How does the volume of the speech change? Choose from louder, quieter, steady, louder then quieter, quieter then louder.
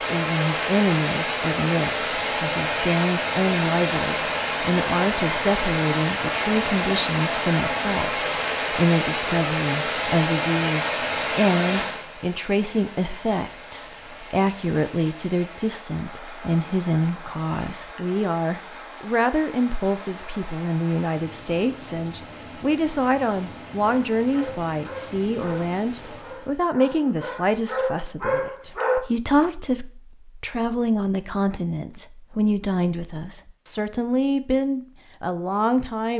steady.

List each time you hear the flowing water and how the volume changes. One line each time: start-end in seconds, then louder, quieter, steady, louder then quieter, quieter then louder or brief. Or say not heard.
0.0-26.6 quieter.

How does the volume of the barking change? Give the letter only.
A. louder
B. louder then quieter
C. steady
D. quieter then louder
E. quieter
A.